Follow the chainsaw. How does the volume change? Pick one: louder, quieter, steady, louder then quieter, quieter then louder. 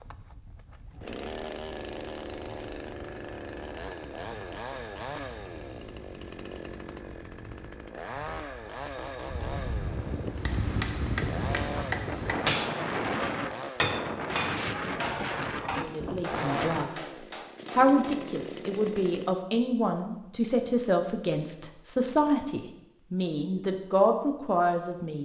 steady.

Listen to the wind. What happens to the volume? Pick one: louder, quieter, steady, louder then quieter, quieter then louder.
louder.